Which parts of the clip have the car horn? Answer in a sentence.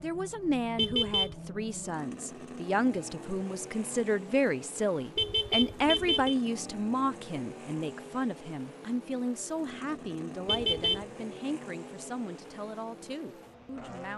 You can hear the car horn from 0.8 to 1.4 s, from 5.2 to 6.3 s and from 10.4 to 11.1 s.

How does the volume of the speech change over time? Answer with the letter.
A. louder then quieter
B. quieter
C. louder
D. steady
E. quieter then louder
B.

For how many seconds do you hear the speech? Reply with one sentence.
The speech can be heard for 14 seconds in total.